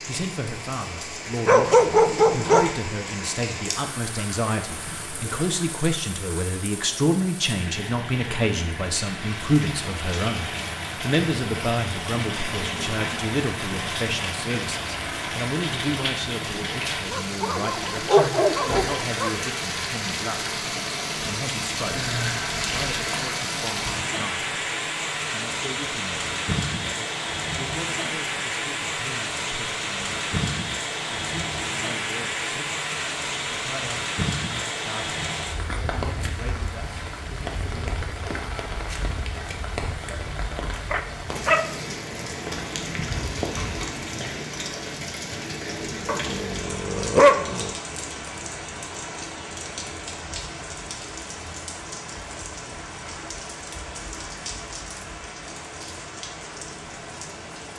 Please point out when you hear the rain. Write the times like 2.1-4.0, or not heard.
0.0-57.7.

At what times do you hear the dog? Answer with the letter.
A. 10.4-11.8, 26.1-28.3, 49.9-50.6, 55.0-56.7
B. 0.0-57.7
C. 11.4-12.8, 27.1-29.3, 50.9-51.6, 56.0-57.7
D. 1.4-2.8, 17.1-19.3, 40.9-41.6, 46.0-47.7
D.